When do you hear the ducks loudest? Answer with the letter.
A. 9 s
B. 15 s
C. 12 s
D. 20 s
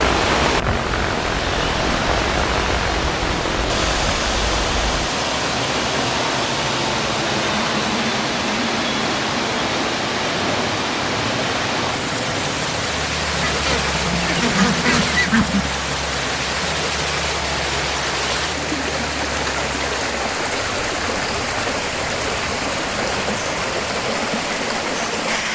B.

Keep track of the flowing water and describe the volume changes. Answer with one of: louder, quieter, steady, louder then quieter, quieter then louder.
steady.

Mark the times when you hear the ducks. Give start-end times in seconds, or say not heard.
13.4-15.7.